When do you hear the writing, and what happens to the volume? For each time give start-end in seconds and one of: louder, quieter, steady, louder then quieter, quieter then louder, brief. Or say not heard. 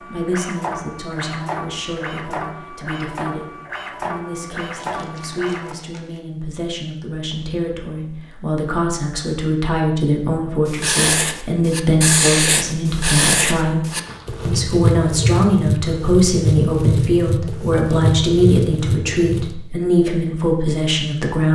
10.7-19.5 steady.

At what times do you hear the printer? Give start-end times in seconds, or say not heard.
0.0-5.8.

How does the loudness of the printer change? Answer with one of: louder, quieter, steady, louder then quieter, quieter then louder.
steady.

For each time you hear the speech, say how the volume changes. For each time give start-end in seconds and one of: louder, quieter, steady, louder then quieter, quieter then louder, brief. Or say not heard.
0.1-21.5 louder.